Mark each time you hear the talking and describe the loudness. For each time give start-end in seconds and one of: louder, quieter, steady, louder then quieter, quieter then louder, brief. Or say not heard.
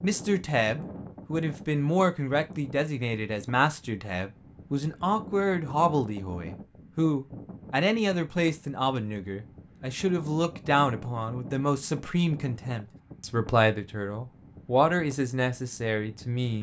0.0-16.5 steady.